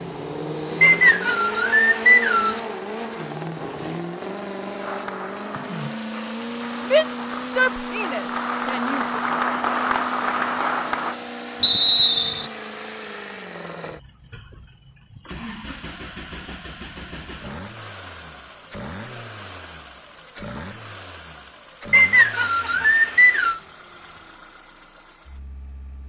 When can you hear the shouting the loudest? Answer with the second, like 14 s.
7 s.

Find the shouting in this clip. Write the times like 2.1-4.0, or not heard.
6.8-9.1.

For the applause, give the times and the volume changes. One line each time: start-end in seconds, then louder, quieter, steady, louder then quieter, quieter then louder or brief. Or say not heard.
4.8-11.2 louder.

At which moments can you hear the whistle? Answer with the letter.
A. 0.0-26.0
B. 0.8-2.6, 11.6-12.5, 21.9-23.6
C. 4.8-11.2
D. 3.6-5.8
B.